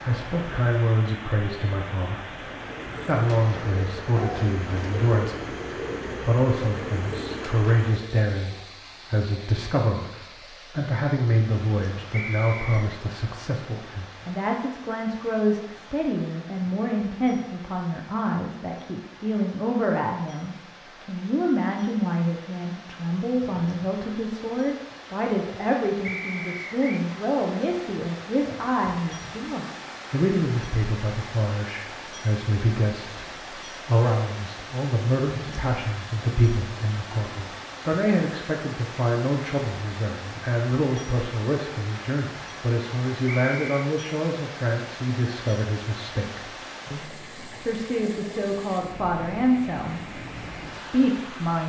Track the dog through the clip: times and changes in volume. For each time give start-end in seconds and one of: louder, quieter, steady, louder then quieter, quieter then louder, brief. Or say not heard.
not heard.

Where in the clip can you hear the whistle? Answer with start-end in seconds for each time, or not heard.
12.1-12.9, 26.0-27.1, 43.2-43.9.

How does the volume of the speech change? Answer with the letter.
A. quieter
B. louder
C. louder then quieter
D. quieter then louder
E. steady
E.